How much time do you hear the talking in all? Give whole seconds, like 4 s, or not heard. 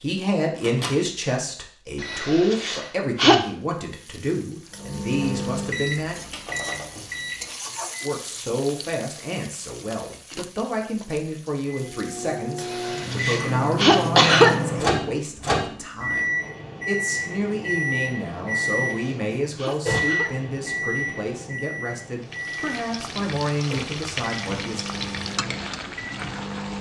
23 s.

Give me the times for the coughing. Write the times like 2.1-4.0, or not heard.
2.0-3.4, 12.6-14.5, 18.4-20.3.